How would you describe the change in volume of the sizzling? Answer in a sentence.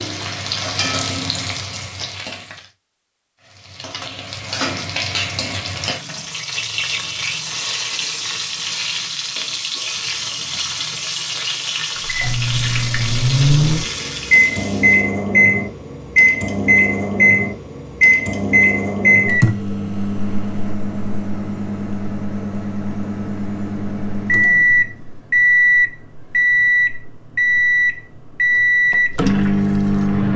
The loudness of the sizzling stays about the same.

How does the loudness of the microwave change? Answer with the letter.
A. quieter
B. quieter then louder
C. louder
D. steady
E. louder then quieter
B.